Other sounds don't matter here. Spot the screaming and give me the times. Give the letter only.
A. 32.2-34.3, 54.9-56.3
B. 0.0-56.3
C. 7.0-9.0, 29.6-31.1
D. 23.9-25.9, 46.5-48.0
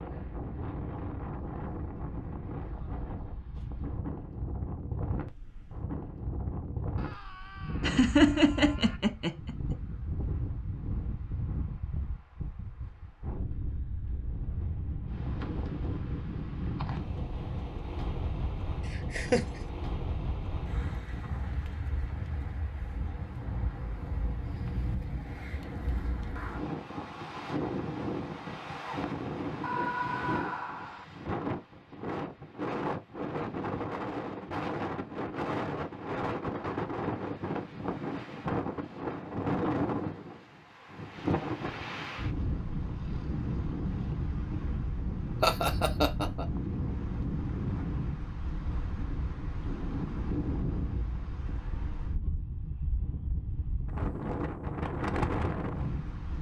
C.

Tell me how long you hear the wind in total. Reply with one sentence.
You can hear the wind for 56 seconds altogether.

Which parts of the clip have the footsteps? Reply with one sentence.
The footsteps can't be heard in this clip.